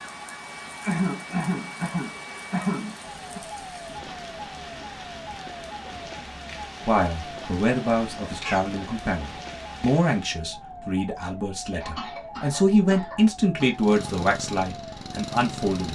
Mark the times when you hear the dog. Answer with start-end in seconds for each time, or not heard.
not heard.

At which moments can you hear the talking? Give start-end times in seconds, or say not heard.
6.8-15.8.